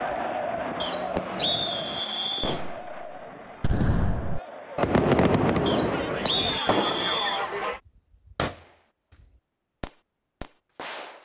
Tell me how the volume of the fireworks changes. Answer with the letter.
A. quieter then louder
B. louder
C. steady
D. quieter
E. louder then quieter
E.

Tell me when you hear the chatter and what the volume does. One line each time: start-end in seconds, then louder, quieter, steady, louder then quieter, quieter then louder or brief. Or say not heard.
0.0-7.8 quieter then louder.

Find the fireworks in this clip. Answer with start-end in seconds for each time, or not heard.
0.0-11.1.